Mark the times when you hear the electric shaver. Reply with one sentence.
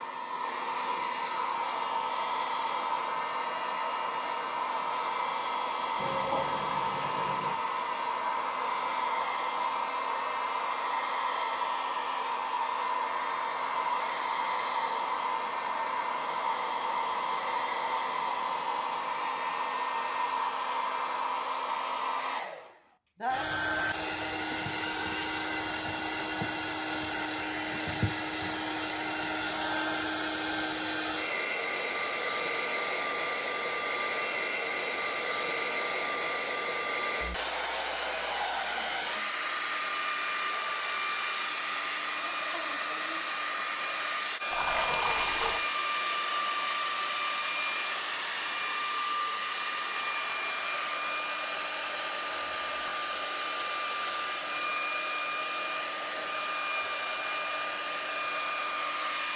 The electric shaver can't be heard in this clip.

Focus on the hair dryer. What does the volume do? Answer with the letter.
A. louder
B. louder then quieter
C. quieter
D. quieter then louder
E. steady
E.